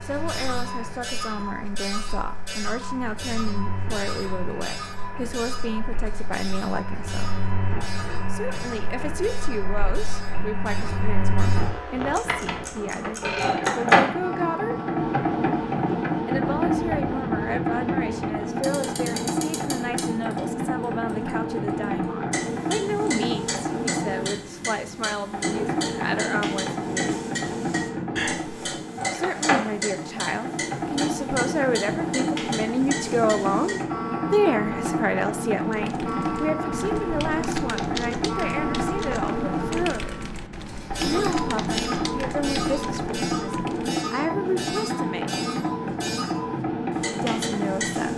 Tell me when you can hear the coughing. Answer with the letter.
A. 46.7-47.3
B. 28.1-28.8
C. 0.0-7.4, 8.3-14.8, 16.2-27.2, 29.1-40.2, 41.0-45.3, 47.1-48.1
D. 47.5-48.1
B.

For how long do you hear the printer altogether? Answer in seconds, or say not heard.
48 s.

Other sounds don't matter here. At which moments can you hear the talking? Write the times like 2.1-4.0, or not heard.
0.0-7.4, 8.3-14.8, 16.2-27.2, 29.1-40.2, 41.0-45.3, 47.1-48.1.